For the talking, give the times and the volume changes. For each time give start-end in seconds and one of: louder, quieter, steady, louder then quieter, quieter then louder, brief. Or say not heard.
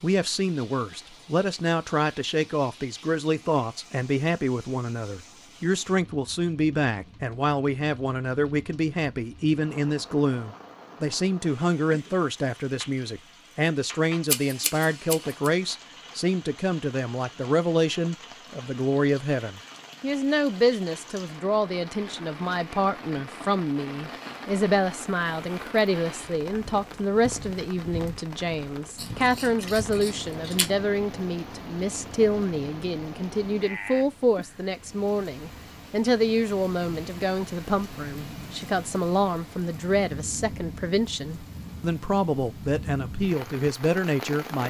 0.0-44.6 steady.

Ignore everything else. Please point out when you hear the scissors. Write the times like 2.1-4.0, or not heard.
14.2-15.5, 28.9-30.6.